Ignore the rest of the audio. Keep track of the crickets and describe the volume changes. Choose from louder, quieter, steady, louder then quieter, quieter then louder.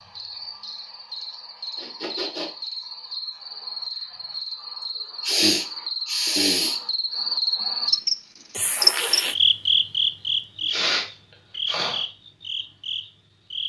louder then quieter.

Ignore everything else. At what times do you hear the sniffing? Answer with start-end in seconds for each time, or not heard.
1.8-2.5, 5.2-6.8, 10.7-12.1.